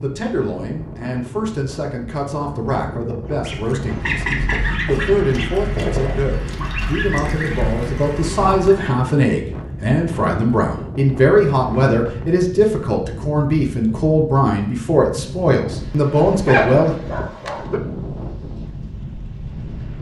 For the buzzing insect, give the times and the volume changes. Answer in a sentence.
You can't hear the buzzing insect here.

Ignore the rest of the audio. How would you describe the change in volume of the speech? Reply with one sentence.
The loudness of the speech goes up.